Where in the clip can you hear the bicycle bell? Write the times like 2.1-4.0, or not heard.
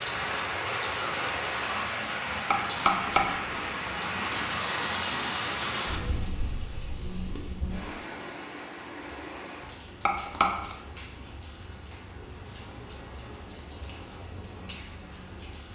2.5-3.6, 10.1-10.8.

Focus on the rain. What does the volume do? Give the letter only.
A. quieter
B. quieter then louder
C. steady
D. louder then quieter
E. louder
A.